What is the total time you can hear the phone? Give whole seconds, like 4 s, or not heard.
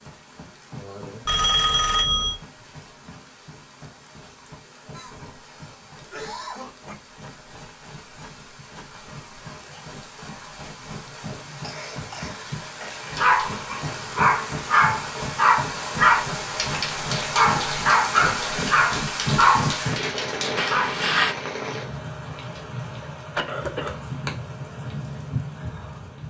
2 s.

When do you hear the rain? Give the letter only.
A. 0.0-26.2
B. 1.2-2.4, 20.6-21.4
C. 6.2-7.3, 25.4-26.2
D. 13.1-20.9
A.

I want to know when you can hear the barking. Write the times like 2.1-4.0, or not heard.
13.1-20.9.